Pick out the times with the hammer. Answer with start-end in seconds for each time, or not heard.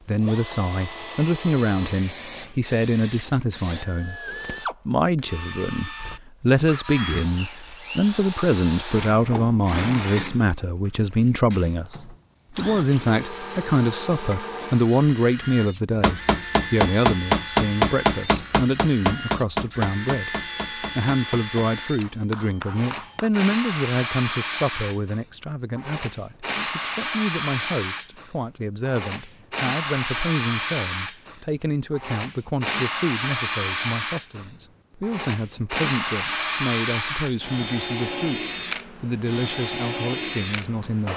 15.9-23.3.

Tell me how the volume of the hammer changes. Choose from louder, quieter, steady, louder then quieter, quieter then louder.
quieter.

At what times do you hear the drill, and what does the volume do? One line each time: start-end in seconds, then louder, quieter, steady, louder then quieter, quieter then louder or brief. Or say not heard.
0.0-41.1 louder.